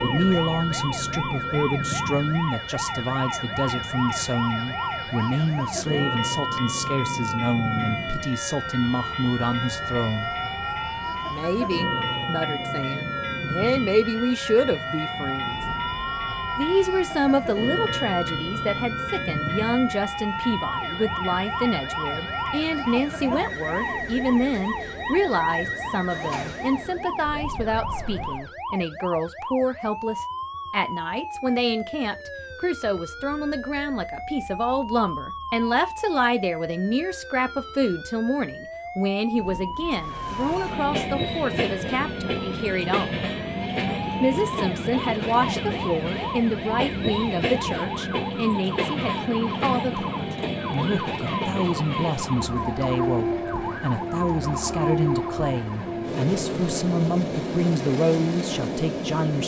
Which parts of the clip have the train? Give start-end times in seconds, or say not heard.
0.0-28.5, 40.0-59.4.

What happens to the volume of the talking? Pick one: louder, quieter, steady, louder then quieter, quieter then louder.
steady.